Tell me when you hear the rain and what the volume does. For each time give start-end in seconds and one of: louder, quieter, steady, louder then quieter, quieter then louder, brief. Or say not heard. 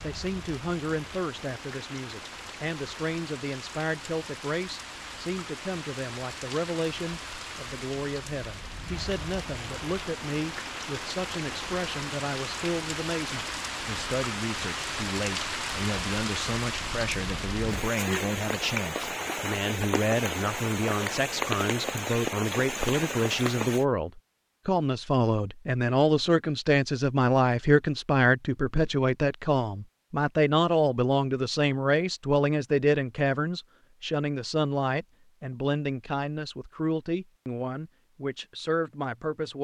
0.0-23.9 louder.